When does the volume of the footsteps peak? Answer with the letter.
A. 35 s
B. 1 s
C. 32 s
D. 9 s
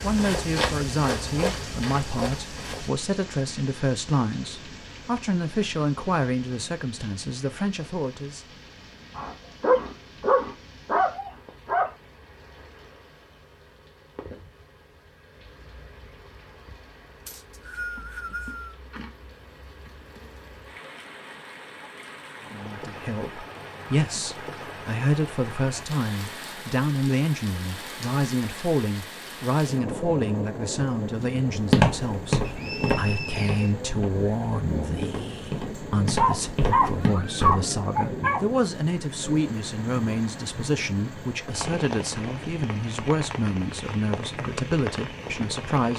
C.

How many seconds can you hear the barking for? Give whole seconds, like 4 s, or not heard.
5 s.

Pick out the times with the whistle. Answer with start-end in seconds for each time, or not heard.
17.2-18.8, 32.4-33.8.